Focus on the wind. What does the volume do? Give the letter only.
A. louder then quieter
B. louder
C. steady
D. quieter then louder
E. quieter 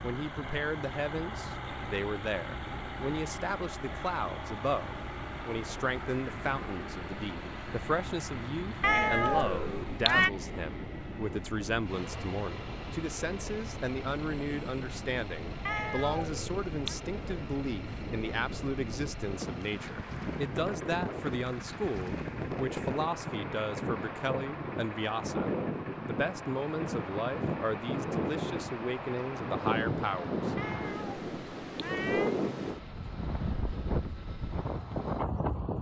B.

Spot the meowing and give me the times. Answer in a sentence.
The meowing can be heard from 8.8 to 10.3 s, from 15.7 to 16.9 s and from 30.6 to 32.4 s.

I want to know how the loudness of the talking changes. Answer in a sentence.
The loudness of the talking stays about the same.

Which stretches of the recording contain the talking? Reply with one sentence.
You can hear the talking from 0.0 to 30.6 s.